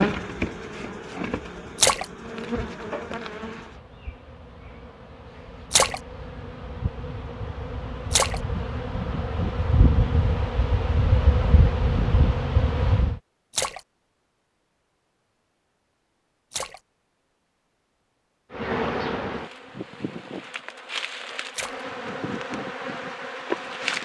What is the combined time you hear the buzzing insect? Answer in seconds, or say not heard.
19 s.